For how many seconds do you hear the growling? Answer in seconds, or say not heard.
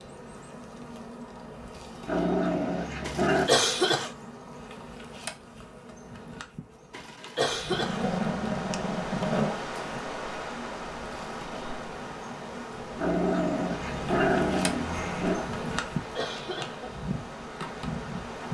6 s.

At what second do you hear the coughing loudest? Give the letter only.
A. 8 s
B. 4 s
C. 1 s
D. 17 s
B.